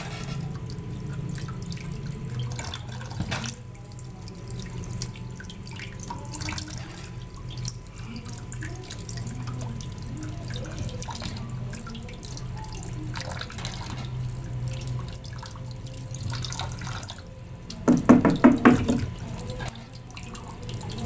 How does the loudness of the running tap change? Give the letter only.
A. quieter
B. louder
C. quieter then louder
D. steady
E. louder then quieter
D.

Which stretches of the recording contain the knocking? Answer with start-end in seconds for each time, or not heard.
17.9-19.1.